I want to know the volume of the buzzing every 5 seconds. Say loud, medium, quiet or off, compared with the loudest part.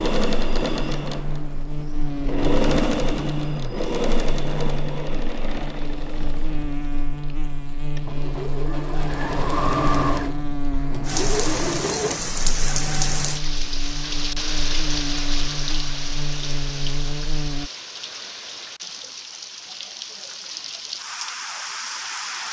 loud, loud, loud, loud, off.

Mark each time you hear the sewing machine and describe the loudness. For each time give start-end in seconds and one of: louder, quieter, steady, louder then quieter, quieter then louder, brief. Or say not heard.
0.0-12.2 quieter then louder.